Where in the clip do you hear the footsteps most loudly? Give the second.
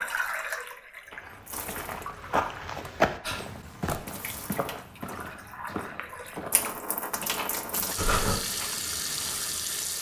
3 s.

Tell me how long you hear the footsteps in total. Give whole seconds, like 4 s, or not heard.
9 s.